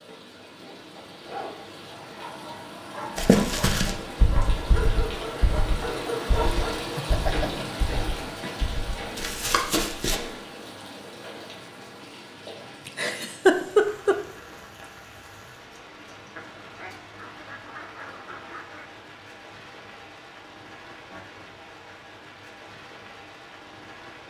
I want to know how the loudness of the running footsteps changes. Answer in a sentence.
The loudness of the running footsteps goes down, then up.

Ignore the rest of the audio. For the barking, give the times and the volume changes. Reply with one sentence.
You can hear the barking from 1.2 to 6.9 s, getting louder.